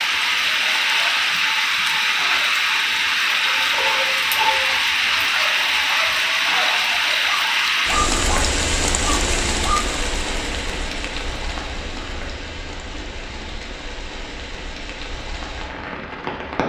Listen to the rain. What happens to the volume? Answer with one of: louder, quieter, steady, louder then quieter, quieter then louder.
quieter.